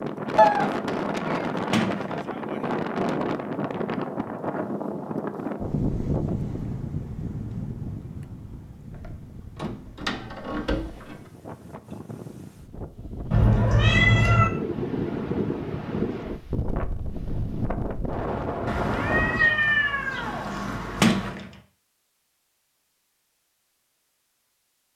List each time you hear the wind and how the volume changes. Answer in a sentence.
You can hear the wind from 0.0 to 19.6 s, getting quieter then louder.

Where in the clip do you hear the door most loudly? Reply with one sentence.
The loudest moment of the door is at 21 seconds.